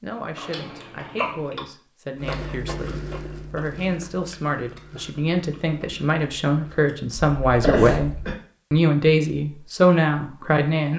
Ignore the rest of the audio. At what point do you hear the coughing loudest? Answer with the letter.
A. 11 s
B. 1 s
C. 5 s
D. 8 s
D.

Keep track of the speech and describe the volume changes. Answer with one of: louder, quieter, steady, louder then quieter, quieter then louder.
louder.